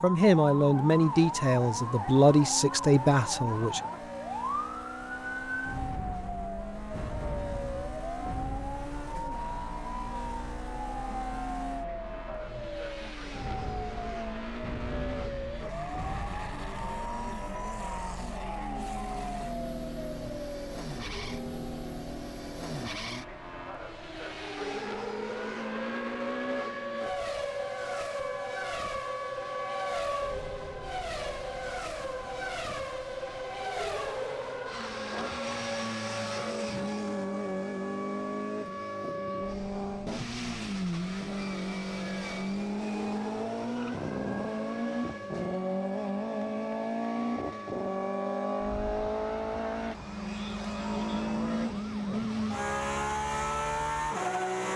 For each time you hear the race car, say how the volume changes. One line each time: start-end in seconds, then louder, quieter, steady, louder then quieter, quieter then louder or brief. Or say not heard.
0.0-54.7 louder.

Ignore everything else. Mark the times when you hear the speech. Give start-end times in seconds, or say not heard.
0.0-3.8.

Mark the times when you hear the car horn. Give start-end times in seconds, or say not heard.
not heard.